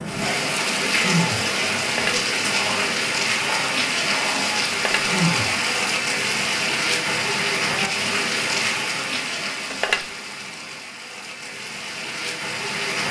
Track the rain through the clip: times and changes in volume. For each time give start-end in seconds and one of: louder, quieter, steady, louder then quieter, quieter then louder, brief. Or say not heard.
0.0-13.0 quieter.